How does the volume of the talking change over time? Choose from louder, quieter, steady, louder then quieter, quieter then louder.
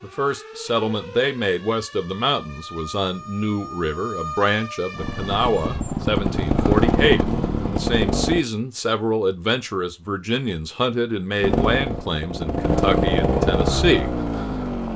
steady.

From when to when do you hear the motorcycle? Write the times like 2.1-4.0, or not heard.
5.0-8.4, 11.4-14.9.